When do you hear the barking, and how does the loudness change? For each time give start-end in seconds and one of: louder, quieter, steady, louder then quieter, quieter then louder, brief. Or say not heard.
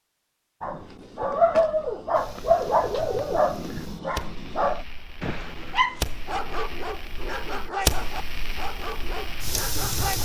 0.6-10.1 quieter.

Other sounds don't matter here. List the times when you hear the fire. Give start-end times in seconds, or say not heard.
2.1-10.1.